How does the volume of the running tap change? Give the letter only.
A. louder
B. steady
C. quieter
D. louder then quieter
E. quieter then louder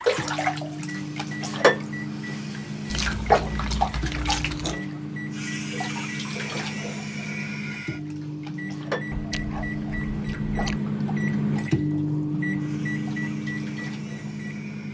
C.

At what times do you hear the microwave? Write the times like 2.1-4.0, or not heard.
0.0-14.8.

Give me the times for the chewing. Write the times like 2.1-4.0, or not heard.
2.9-4.8, 9.1-10.8.